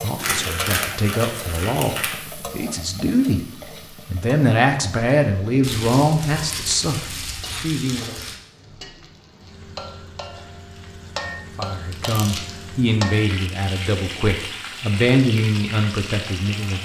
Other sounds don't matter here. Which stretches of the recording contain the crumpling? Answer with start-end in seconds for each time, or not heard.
0.1-2.2, 5.6-8.3, 11.9-12.5.